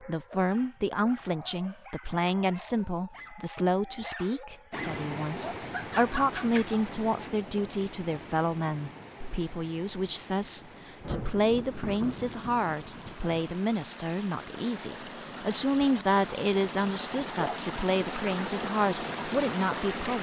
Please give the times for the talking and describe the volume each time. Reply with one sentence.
The talking can be heard from 0.1 to 20.1 s, at a steady volume.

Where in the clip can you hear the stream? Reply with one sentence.
You can hear the stream from 4.7 to 20.1 s.